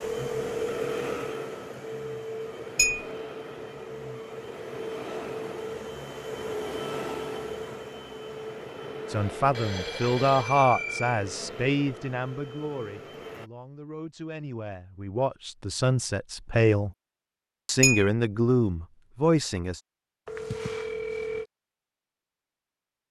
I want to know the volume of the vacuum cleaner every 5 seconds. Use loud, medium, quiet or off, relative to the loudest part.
loud, loud, medium, off, off.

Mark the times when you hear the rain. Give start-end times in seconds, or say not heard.
not heard.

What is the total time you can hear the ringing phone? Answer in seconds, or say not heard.
4 s.